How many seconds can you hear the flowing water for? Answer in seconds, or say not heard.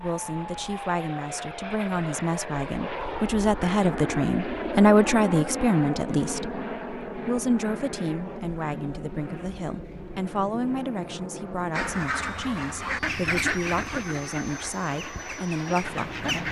not heard.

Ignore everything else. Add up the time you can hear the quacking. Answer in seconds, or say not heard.
5 s.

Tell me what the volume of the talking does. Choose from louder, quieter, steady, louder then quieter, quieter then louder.
louder then quieter.